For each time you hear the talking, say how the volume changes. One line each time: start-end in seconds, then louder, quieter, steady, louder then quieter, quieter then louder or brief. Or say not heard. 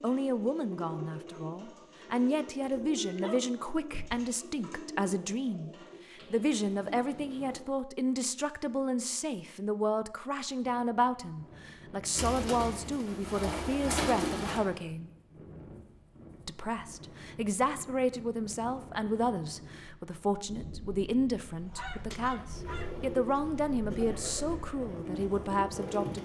0.0-15.1 steady
16.4-26.2 steady.